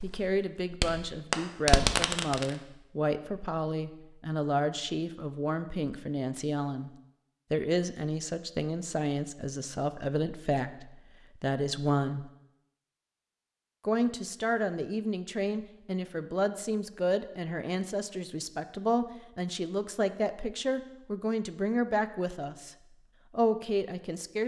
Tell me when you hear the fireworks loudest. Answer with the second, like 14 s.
2 s.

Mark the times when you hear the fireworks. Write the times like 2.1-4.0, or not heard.
0.0-2.5.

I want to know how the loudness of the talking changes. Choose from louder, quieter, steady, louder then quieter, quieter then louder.
steady.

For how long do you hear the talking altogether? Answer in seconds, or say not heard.
22 s.